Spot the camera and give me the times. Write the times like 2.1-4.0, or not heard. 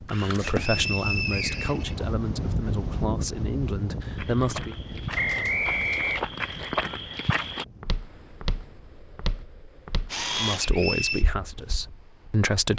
0.1-0.7, 5.1-6.0, 10.1-10.7.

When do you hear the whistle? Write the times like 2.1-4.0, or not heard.
0.4-1.9, 5.2-6.2, 10.6-11.2.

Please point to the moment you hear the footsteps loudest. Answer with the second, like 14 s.
7 s.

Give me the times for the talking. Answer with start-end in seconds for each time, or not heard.
0.0-4.8, 10.4-12.7.